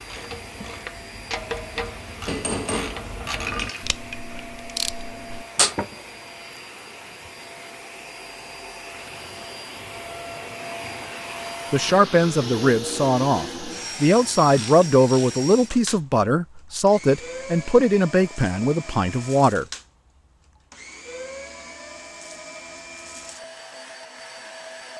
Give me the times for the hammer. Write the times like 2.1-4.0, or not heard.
2.2-3.9.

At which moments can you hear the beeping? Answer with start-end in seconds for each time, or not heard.
not heard.